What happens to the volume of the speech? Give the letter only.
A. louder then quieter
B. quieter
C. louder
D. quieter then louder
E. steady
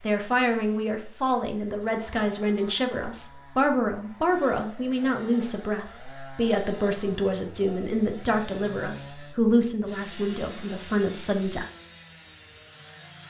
E.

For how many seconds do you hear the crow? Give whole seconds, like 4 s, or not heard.
not heard.